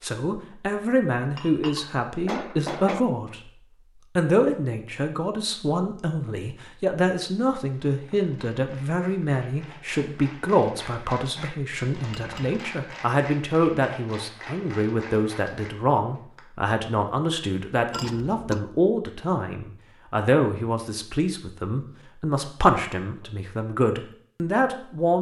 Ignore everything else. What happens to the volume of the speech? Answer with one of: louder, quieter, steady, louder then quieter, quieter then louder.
steady.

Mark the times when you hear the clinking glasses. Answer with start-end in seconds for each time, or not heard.
1.4-3.0, 11.9-12.6, 17.9-18.6.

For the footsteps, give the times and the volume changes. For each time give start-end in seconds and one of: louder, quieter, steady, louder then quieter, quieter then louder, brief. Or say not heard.
not heard.